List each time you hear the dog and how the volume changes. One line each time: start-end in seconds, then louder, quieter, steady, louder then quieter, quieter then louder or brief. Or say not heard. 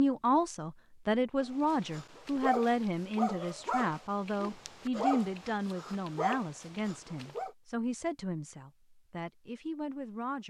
1.4-7.5 quieter then louder.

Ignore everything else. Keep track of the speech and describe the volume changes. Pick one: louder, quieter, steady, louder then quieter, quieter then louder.
quieter.